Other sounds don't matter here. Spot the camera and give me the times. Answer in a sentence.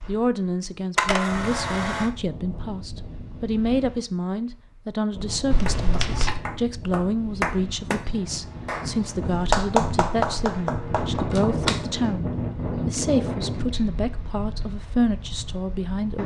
The camera can be heard from 0.9 to 2.1 s, from 5.5 to 6.3 s and from 11.3 to 11.8 s.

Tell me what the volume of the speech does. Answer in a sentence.
The volume of the speech stays about the same.